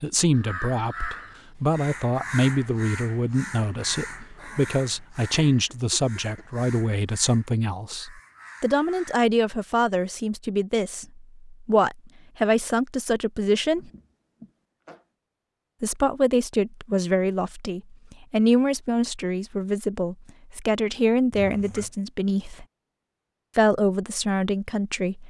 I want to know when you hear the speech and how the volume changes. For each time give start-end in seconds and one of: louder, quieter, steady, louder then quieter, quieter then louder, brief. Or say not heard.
0.0-13.9 steady
15.8-22.6 steady
23.6-25.2 brief.